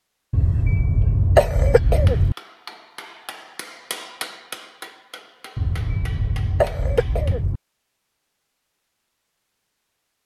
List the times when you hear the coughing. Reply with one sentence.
You can hear the coughing from 0.3 to 2.4 s and from 5.5 to 7.6 s.